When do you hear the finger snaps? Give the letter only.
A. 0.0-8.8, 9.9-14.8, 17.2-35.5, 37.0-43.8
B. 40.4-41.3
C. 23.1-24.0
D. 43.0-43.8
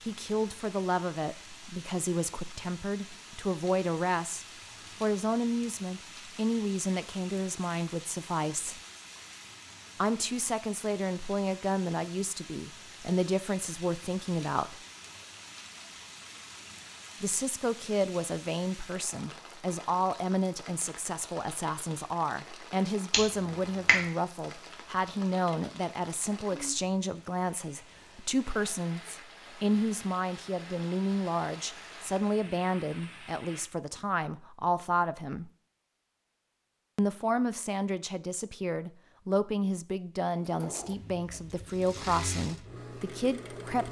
C.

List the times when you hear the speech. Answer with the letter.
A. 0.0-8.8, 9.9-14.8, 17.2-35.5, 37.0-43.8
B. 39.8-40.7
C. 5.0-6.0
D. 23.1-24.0
A.